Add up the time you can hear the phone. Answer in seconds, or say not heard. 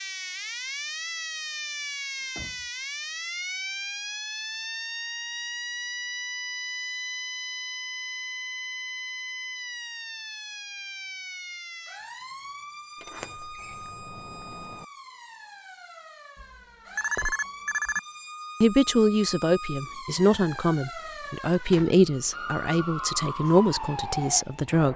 2 s.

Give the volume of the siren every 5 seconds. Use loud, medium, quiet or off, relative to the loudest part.
loud, loud, medium, medium, loud.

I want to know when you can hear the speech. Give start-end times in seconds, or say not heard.
18.6-24.9.